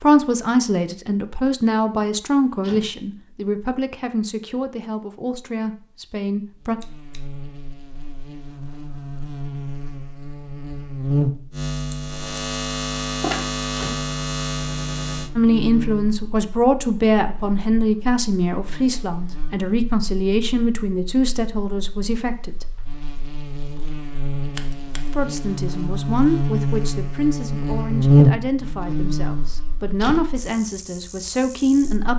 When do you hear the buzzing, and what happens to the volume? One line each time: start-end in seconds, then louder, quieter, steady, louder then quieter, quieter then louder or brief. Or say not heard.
6.6-32.1 quieter then louder.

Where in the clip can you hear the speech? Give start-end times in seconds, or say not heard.
0.0-6.8, 15.3-22.6, 25.1-32.1.